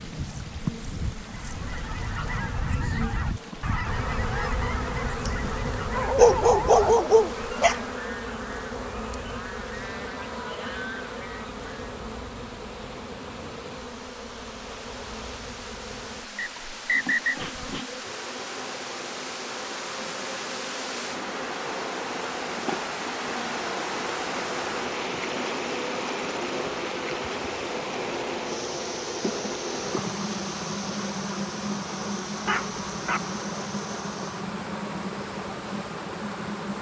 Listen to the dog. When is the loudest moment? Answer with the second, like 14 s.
6 s.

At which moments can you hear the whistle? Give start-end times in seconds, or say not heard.
16.4-17.4.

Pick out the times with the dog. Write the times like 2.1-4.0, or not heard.
5.1-7.8, 32.5-33.2.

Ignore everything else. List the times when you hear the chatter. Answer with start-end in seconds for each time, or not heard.
not heard.